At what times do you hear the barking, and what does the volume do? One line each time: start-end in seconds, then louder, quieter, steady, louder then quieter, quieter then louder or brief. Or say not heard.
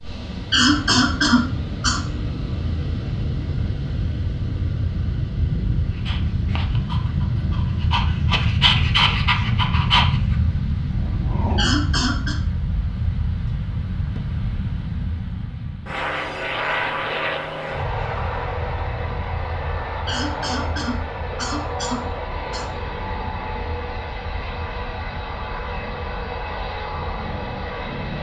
5.9-12.1 louder then quieter.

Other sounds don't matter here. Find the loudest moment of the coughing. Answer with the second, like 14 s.
1 s.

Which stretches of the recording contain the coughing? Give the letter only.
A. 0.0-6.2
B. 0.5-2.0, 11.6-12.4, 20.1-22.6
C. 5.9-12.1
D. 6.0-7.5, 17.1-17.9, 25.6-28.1
B.